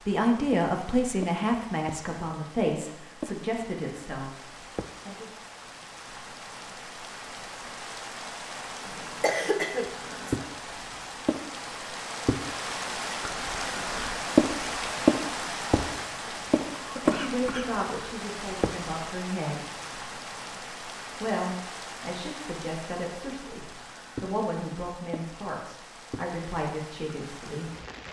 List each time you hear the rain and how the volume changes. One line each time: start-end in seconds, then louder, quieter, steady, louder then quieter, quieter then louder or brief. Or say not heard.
0.0-28.0 louder then quieter.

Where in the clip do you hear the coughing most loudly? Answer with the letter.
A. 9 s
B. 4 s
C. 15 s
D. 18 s
A.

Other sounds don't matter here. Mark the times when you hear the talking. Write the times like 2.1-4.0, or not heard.
0.1-5.2, 17.0-19.6, 21.2-27.8.